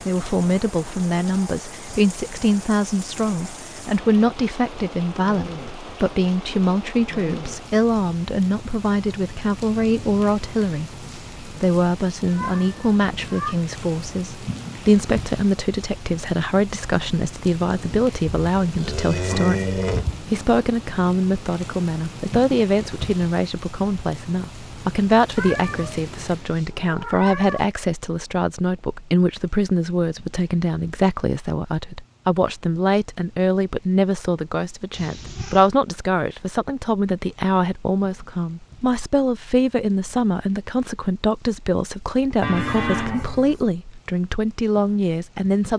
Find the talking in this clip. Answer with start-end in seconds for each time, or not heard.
0.0-45.7.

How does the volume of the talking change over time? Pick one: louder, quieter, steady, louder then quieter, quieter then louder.
steady.